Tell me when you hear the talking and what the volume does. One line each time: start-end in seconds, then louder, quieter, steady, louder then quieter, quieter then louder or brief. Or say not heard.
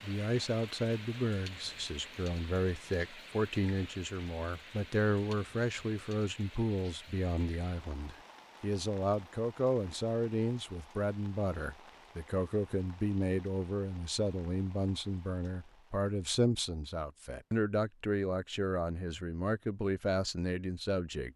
0.0-21.3 steady.